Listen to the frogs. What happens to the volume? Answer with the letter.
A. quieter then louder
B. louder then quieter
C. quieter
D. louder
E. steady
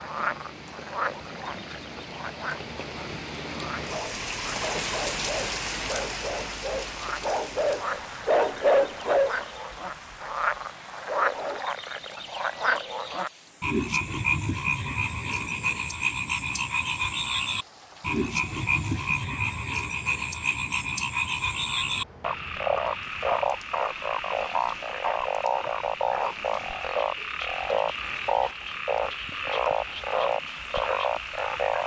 D.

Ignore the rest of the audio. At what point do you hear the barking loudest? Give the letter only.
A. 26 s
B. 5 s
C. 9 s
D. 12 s
C.